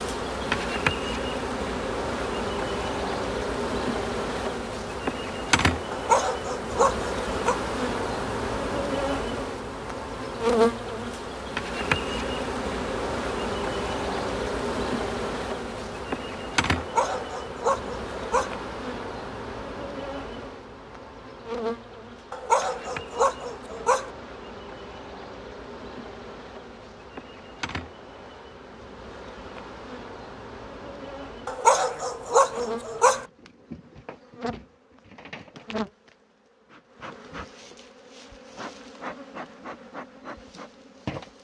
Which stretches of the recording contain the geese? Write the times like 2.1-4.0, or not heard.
not heard.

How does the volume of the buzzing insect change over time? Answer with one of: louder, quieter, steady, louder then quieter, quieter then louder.
quieter.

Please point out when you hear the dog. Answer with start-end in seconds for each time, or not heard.
5.9-7.5, 16.8-18.6, 22.3-24.1, 31.4-33.2.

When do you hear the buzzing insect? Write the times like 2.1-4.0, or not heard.
0.0-41.4.